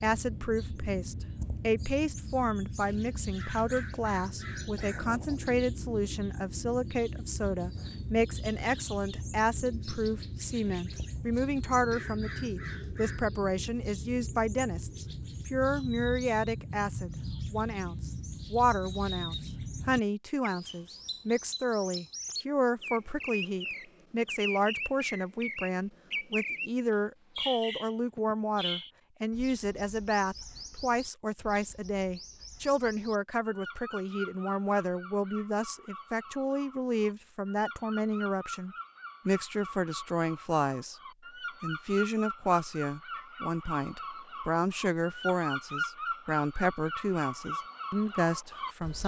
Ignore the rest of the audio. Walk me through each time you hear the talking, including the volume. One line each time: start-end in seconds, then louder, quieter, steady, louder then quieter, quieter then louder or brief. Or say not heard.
0.0-41.0 steady
41.6-49.0 steady.